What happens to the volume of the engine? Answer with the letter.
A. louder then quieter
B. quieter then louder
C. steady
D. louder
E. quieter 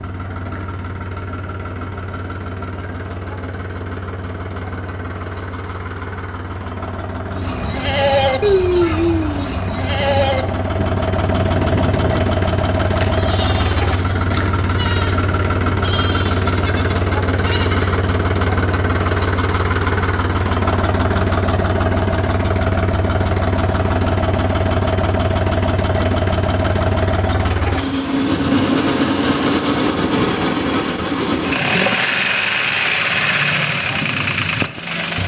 D.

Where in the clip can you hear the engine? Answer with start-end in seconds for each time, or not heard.
0.0-35.2.